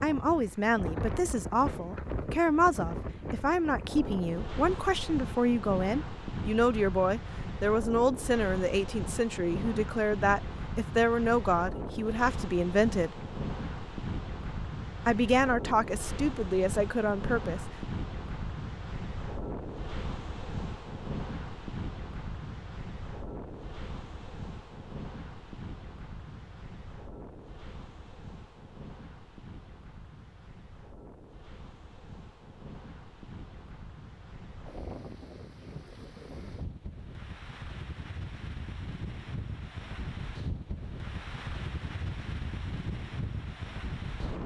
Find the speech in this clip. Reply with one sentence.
The speech can be heard from 0.0 to 13.3 s and from 15.1 to 17.6 s.